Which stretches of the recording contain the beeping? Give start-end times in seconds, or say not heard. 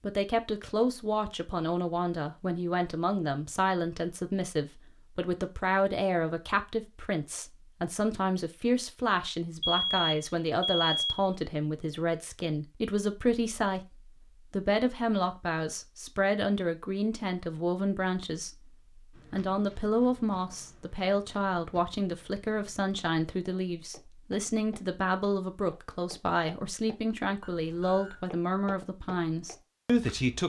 9.6-11.3, 27.4-28.2.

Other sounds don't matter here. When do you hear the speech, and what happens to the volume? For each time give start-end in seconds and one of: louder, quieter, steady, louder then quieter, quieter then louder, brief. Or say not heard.
0.0-30.4 steady.